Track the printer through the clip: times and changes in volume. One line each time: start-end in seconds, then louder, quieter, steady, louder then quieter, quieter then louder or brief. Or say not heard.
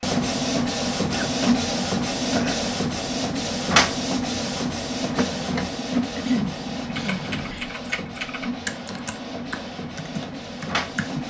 0.0-11.2 quieter.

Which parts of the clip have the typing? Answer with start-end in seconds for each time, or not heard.
6.8-11.2.